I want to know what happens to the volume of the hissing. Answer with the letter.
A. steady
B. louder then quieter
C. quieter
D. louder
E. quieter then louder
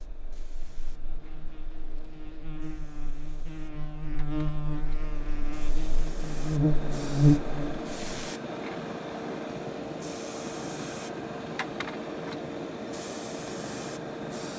D.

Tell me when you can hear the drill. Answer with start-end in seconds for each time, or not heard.
not heard.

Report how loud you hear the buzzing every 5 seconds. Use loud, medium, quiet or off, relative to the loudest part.
quiet, loud, off.